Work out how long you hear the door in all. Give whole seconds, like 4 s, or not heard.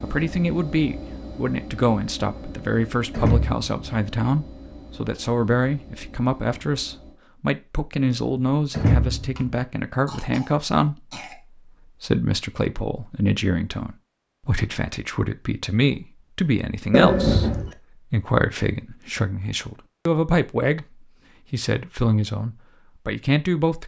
2 s.